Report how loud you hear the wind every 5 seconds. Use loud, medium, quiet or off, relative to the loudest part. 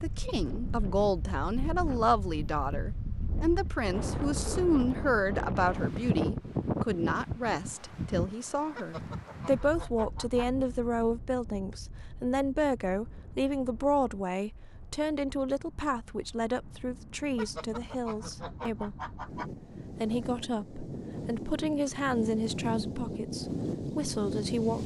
loud, loud, quiet, quiet, loud.